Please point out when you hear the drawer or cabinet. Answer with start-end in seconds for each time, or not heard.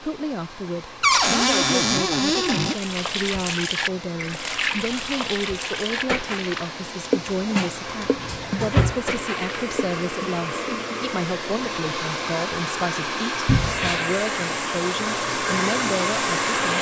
1.0-2.8, 7.5-9.0, 13.4-14.0.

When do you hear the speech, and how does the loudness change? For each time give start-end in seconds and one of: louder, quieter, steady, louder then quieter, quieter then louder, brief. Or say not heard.
0.0-16.7 steady.